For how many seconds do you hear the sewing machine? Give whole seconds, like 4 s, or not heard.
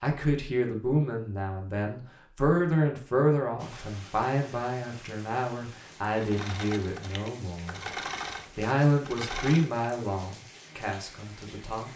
4 s.